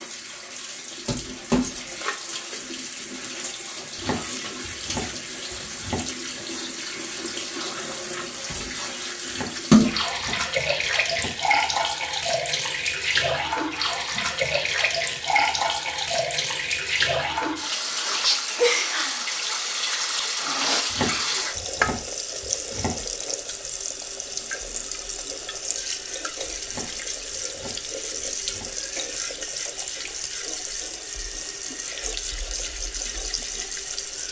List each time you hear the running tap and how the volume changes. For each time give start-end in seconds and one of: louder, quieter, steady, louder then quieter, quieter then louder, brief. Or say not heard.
0.0-34.2 louder then quieter.